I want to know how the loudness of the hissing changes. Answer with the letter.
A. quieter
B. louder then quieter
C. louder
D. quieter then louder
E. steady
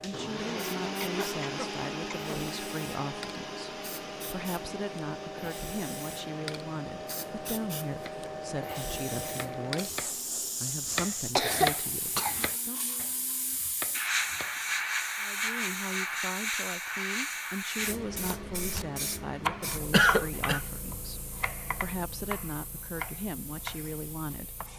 B.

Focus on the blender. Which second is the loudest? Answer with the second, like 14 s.
1 s.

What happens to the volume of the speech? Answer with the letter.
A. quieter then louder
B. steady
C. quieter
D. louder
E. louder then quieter
B.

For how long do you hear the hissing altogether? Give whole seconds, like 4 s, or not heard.
25 s.